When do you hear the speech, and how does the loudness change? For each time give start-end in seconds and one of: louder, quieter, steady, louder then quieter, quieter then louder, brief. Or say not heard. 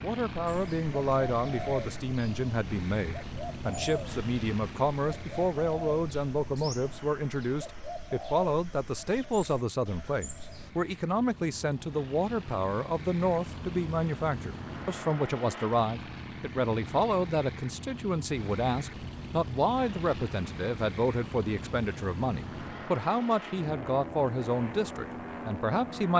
0.0-26.1 steady.